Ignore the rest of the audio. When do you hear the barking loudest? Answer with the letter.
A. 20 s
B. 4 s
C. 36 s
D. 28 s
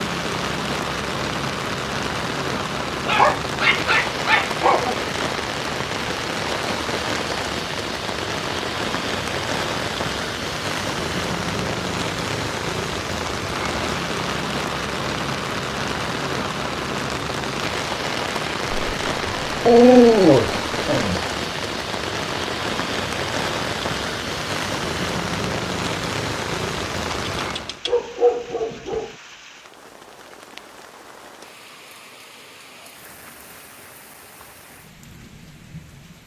A.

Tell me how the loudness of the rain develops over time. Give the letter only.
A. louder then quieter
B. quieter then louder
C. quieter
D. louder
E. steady
C.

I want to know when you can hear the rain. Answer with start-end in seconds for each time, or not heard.
0.0-36.2.